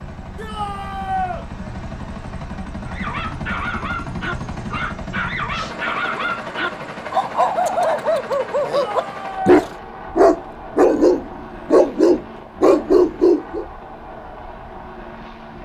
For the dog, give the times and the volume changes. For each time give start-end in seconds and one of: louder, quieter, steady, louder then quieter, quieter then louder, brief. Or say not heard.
2.9-13.7 louder.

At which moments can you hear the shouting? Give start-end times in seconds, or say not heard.
0.3-1.4, 8.7-9.7.